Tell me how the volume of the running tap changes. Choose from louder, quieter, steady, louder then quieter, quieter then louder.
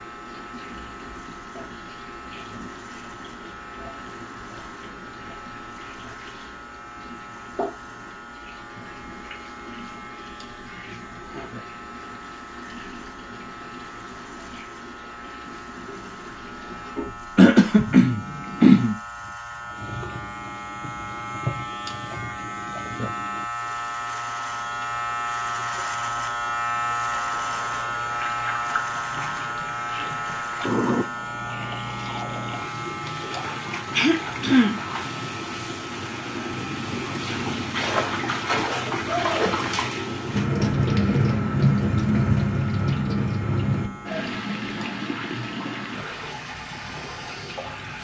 louder.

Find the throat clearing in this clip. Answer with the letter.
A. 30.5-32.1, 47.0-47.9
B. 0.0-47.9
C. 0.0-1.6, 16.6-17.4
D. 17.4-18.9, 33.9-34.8
D.